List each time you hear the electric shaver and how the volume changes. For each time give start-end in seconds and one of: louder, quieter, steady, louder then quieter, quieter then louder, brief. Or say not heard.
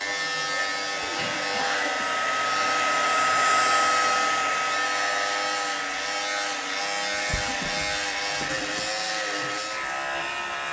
0.0-10.6 steady.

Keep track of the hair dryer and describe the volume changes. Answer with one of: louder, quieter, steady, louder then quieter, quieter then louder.
louder then quieter.